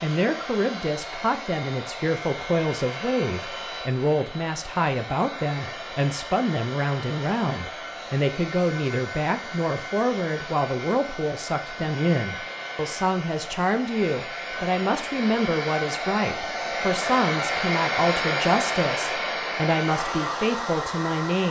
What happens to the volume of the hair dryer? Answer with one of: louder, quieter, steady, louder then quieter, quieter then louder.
louder.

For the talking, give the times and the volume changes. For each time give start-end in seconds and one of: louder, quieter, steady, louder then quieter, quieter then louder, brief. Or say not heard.
0.0-21.4 steady.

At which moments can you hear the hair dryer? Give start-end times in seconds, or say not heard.
0.0-21.4.